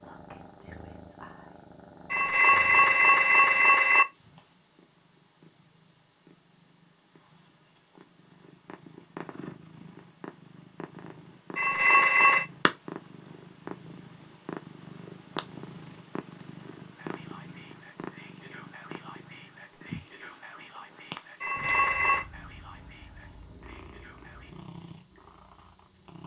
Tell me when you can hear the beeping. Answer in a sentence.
You can hear the beeping from 2.1 to 4.0 s, from 11.6 to 12.4 s and from 21.4 to 22.2 s.